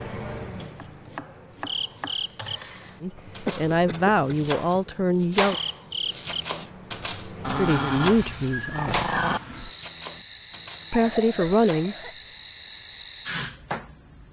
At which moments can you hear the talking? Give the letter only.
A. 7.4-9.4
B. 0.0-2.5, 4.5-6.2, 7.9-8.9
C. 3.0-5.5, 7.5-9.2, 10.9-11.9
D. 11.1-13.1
C.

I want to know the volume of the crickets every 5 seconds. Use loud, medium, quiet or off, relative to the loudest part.
quiet, medium, loud.